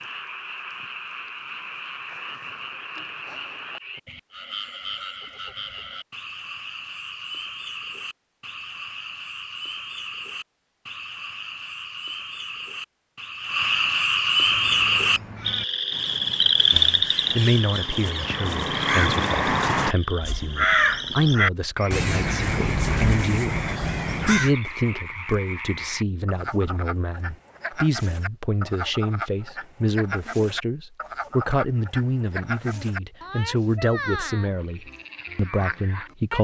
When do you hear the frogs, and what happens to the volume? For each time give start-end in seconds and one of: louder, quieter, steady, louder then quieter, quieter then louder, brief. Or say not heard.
0.0-36.3 louder then quieter.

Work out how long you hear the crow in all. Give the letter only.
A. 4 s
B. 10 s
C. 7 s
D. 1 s
B.